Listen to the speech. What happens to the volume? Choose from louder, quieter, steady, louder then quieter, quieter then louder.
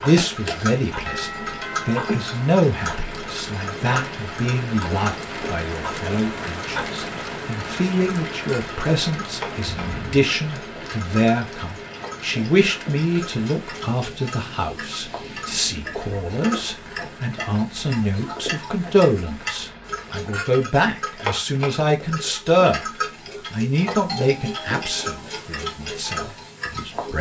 steady.